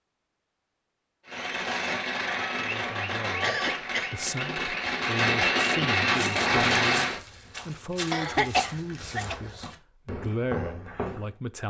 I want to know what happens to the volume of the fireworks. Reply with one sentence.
The volume of the fireworks goes up.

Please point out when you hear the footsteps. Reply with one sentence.
You can hear the footsteps from 6.1 to 11.3 s.